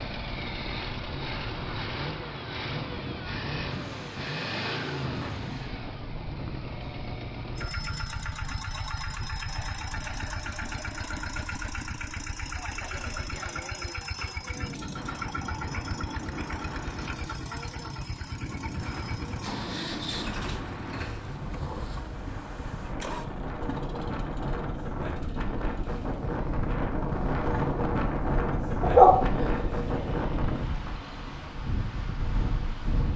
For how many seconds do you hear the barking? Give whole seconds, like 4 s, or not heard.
2 s.